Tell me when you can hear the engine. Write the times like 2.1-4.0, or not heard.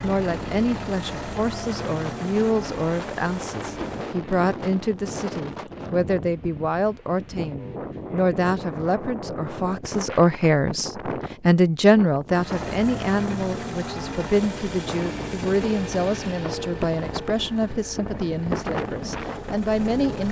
0.0-4.2, 12.3-20.2.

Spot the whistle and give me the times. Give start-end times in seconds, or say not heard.
not heard.